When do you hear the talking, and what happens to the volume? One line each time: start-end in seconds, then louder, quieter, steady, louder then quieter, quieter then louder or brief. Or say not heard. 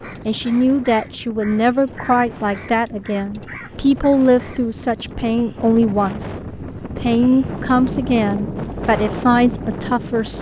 0.2-10.3 steady.